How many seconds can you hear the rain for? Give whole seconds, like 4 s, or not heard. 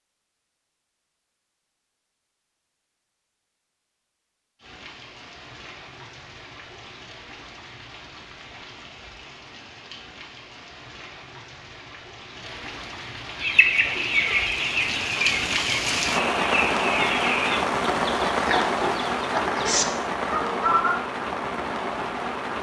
18 s.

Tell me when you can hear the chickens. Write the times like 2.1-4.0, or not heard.
13.4-20.9.